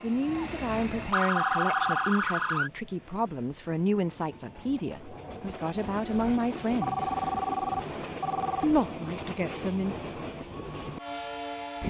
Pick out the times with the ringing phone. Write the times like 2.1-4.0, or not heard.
1.4-2.1, 6.8-8.7.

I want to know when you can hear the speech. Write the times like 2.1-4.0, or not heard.
0.0-7.0, 8.6-9.9.